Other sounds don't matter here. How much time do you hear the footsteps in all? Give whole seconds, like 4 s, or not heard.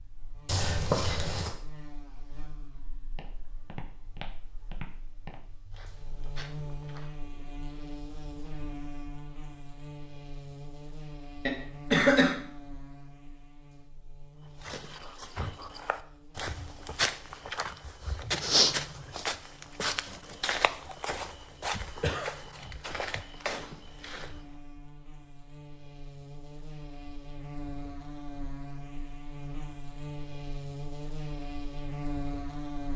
14 s.